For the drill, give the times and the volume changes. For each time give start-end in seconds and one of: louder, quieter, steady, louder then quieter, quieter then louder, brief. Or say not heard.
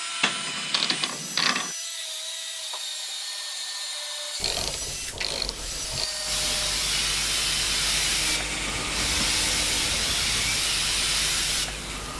0.0-12.1 steady.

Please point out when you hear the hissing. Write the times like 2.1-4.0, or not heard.
4.8-12.1.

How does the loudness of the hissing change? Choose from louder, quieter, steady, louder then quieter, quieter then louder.
louder.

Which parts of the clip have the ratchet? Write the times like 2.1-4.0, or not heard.
0.2-1.8, 4.4-6.0, 8.7-10.6.